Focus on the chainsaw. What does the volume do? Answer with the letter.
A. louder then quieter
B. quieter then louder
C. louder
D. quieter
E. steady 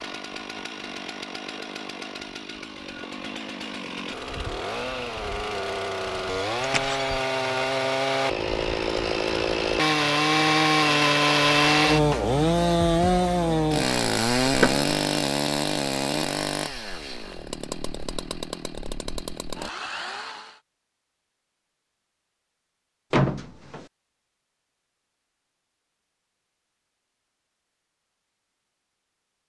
A.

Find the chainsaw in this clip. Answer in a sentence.
You can hear the chainsaw from 0.0 to 20.6 s.